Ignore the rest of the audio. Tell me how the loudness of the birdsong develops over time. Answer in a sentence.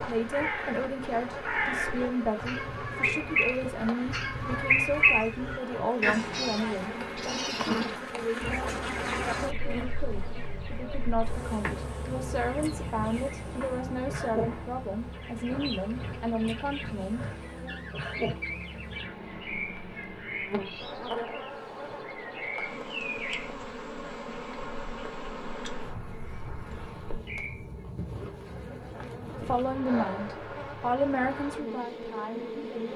The volume of the birdsong goes down.